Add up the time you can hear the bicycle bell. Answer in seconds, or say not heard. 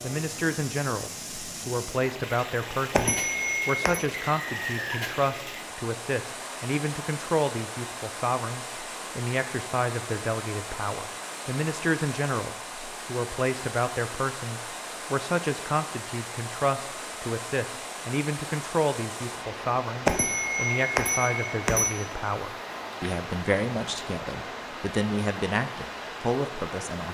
3 s.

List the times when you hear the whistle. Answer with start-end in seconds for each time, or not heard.
4.1-5.2.